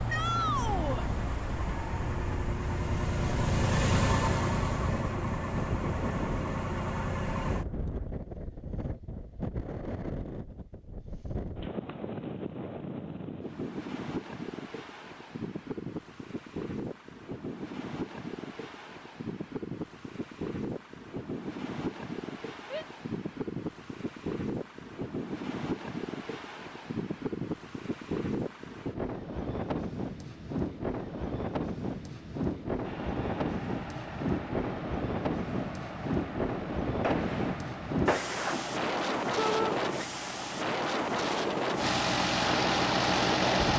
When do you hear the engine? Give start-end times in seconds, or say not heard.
0.0-8.1, 32.8-43.7.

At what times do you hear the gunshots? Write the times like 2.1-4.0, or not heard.
37.0-38.8.